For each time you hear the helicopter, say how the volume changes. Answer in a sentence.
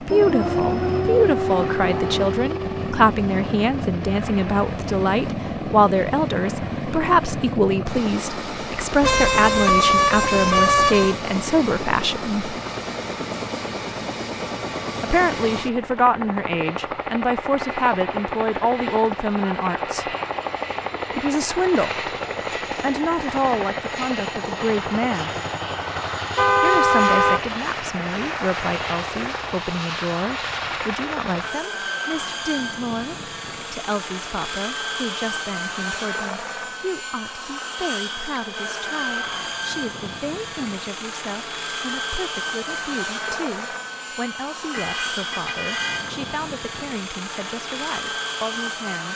You can hear the helicopter from 0.0 to 49.1 s, at a steady volume.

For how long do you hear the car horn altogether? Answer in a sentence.
The car horn can be heard for 5 seconds in total.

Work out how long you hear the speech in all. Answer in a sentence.
You can hear the speech for 44 seconds altogether.